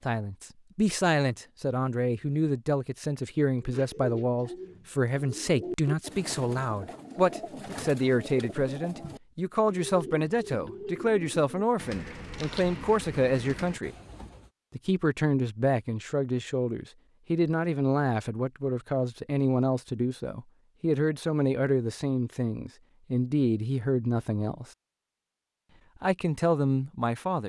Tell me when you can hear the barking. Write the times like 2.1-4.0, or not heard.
not heard.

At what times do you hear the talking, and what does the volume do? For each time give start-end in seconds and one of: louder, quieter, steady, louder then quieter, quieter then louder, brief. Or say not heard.
0.1-13.9 steady
14.7-24.6 steady
26.0-27.4 brief.